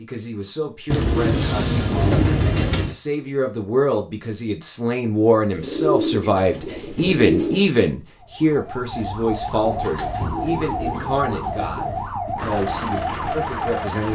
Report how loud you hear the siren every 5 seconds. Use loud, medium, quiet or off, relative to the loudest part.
off, loud, loud.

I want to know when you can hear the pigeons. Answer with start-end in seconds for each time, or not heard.
0.9-3.0, 5.5-7.7, 9.6-12.1.